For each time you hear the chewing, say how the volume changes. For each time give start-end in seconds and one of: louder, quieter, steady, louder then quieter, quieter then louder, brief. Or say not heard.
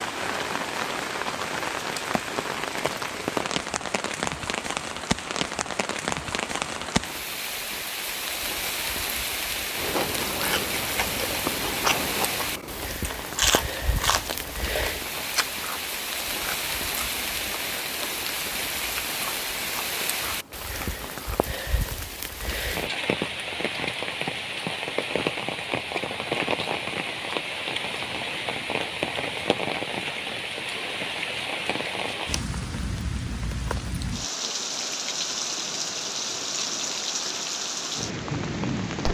9.8-21.6 quieter.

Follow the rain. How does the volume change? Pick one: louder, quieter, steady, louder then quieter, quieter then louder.
steady.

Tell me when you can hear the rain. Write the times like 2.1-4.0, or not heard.
0.0-39.0.